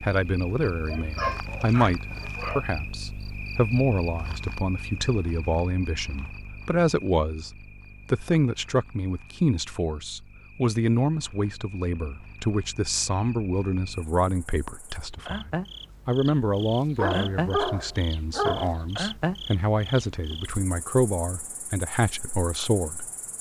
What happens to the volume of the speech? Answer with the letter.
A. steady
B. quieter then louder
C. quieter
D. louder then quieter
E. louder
A.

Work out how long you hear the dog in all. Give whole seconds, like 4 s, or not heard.
4 s.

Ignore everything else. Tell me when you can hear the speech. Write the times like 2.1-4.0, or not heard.
0.0-7.5, 8.1-23.0.